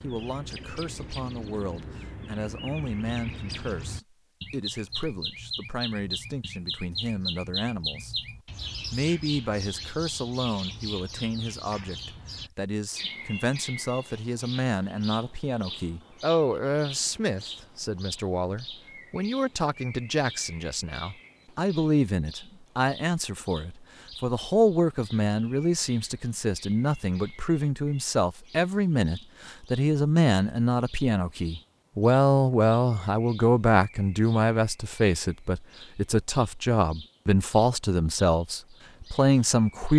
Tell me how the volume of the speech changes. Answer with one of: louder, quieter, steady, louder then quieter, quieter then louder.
louder.